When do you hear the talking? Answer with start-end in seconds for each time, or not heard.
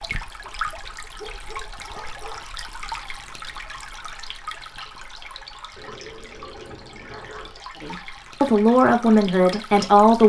7.8-10.2.